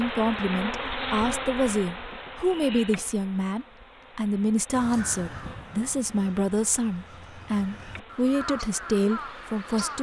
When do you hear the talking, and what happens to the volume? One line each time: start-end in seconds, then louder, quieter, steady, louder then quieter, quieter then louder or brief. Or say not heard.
0.0-9.9 steady.